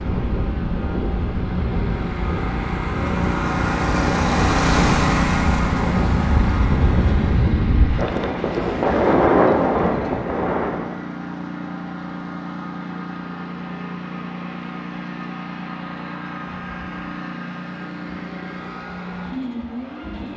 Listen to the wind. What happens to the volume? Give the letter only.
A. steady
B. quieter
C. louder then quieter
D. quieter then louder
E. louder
E.